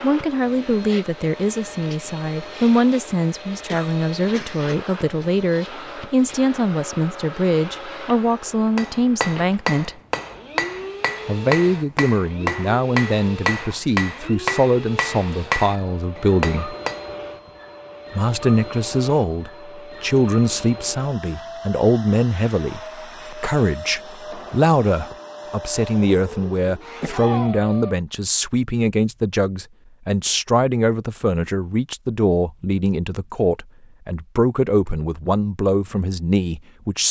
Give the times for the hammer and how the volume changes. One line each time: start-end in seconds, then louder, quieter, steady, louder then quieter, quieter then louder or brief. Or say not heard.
8.8-17.1 steady.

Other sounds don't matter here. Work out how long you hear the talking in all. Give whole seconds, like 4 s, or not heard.
34 s.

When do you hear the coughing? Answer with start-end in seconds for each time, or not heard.
3.6-4.8, 27.0-27.9.